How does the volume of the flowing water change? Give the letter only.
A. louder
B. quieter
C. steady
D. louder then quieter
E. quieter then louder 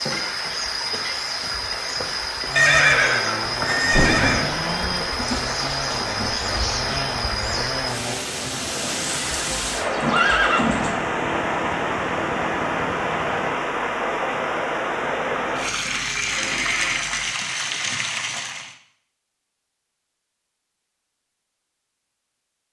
C.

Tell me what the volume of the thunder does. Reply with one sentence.
The loudness of the thunder goes down.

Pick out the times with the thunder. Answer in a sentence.
The thunder can be heard from 3.8 to 7.8 s.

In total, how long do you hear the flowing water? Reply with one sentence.
The flowing water can be heard for 19 seconds in total.